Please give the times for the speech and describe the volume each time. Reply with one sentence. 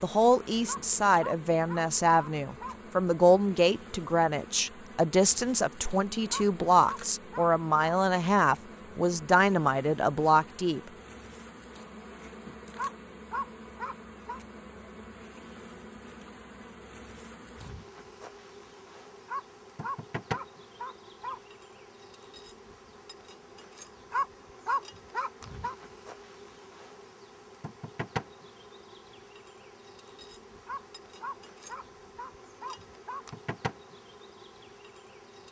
You can hear the speech from 0.0 to 10.8 s, at a steady volume.